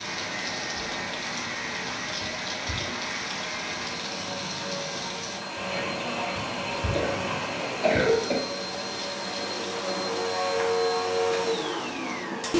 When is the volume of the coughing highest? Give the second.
8 s.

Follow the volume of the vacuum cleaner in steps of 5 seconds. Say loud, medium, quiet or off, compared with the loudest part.
medium, medium, loud.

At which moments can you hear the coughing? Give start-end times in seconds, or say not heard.
2.2-2.9, 6.3-8.3.